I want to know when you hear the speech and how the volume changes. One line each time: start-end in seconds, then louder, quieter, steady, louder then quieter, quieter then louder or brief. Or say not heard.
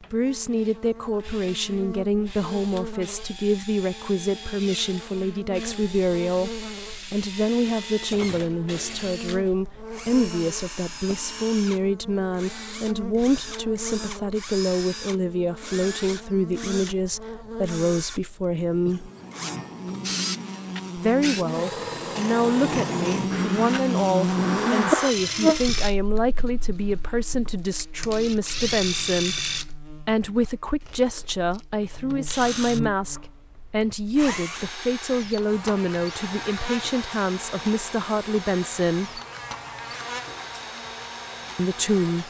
0.0-6.5 steady
7.1-19.1 steady
20.9-39.2 steady
41.5-42.2 brief.